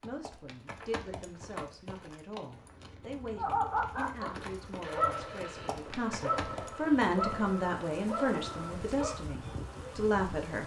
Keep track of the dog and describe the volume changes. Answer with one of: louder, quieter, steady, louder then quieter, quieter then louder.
quieter.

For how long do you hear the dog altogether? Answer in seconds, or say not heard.
6 s.